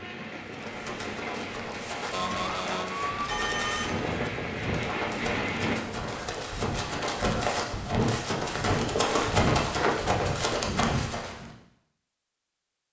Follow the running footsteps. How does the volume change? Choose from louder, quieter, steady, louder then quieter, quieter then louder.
louder.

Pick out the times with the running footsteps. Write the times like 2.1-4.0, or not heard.
0.5-11.5.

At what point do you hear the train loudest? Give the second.
5 s.